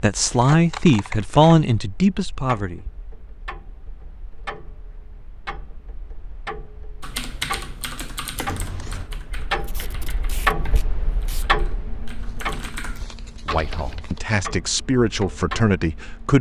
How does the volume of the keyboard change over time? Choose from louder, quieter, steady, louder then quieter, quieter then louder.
quieter then louder.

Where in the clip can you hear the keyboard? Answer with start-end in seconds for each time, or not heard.
7.0-14.0.